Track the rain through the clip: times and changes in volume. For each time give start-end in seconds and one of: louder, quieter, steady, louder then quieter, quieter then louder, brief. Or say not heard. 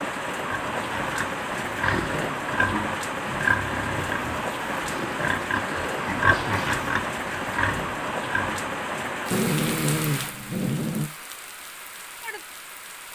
0.0-13.1 quieter.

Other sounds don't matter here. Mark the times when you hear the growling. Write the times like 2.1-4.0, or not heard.
1.8-2.4, 4.9-6.7, 9.3-11.1.